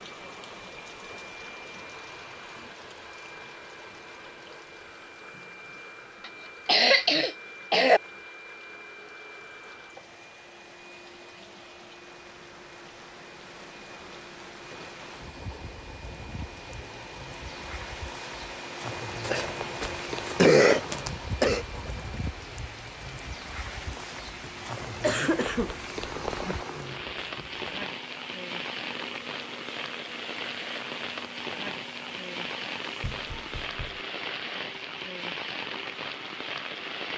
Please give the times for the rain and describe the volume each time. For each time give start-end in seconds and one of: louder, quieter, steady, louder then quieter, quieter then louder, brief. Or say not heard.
0.0-37.1 louder.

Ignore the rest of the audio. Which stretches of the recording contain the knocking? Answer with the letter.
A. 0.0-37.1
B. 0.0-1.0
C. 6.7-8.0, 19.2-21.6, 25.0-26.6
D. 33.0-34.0
D.